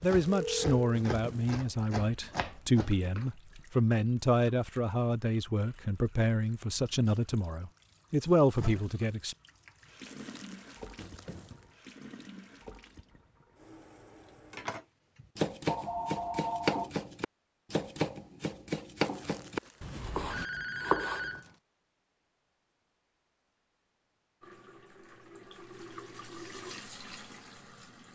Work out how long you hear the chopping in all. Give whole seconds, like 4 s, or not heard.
10 s.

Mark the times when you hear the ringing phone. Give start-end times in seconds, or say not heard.
0.2-0.8, 15.7-16.9, 20.2-21.6.